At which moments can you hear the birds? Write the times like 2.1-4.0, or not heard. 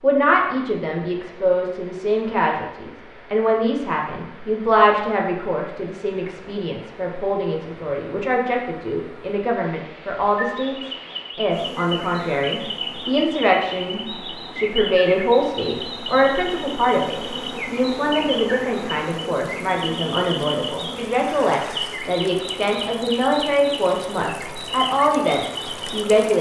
10.2-26.1.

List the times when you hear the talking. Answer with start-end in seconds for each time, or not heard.
0.0-26.3.